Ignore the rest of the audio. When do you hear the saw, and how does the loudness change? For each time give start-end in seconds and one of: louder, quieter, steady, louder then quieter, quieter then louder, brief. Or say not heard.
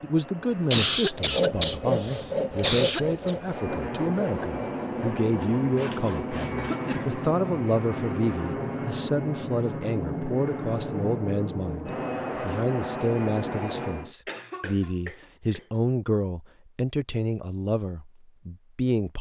1.1-6.9 quieter.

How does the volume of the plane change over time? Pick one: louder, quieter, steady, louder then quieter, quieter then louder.
louder.